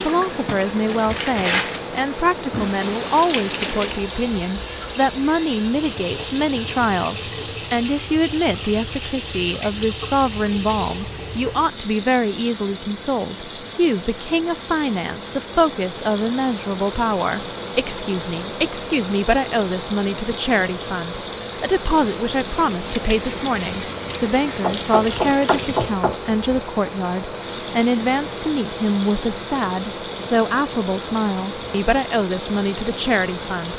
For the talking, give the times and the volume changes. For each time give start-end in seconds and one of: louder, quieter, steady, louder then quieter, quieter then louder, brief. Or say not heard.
0.0-33.7 steady.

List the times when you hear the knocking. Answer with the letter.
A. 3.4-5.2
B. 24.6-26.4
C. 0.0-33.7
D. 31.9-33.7
B.